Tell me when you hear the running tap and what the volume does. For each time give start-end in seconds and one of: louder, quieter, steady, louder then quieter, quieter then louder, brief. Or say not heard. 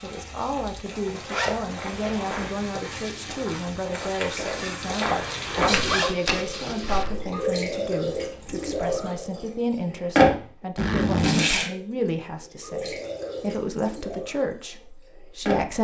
0.0-15.7 louder then quieter.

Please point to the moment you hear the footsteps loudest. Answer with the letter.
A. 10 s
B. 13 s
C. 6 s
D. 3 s
C.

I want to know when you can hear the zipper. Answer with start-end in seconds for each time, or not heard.
0.6-2.3, 5.7-7.0, 10.8-11.5.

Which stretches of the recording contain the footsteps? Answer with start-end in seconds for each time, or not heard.
1.7-7.3.